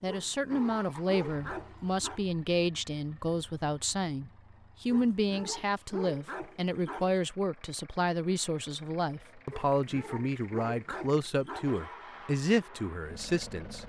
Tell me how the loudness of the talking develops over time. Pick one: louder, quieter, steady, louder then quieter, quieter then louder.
steady.